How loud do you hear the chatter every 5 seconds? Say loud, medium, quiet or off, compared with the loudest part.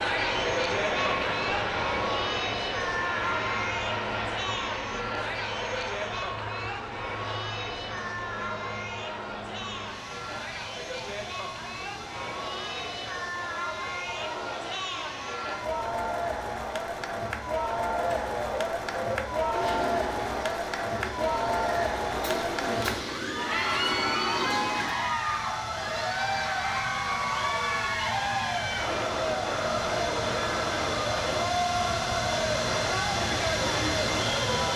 loud, medium, medium, loud, loud, loud, loud.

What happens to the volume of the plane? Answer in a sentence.
The volume of the plane goes down, then up.